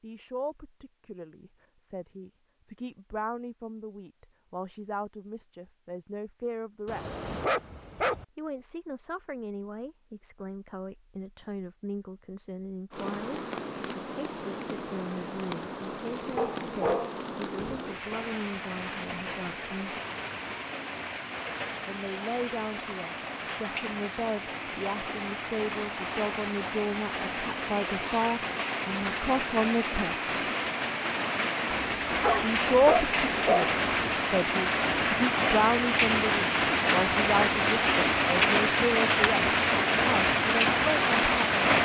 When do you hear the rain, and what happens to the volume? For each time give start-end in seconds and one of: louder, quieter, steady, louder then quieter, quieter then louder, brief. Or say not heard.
12.9-41.8 louder.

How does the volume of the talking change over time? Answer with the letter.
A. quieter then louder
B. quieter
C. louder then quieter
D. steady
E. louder
E.